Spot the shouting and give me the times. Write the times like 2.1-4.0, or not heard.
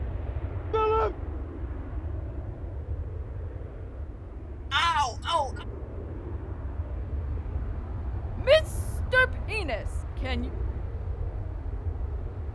0.7-1.1, 4.7-5.7, 8.3-10.5.